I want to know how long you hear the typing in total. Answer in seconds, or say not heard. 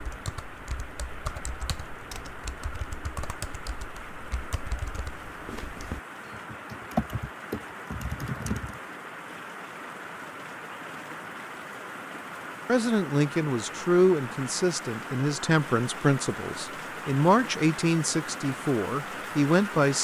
9 s.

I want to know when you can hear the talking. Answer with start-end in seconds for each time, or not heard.
12.7-19.9.